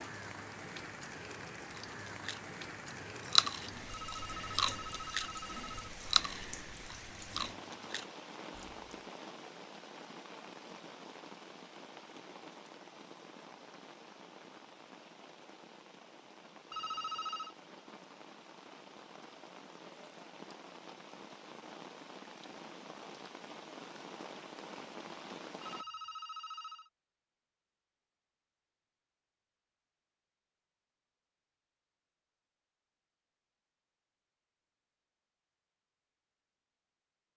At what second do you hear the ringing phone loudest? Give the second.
17 s.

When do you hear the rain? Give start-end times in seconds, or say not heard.
0.0-25.9.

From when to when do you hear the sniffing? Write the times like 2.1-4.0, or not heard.
not heard.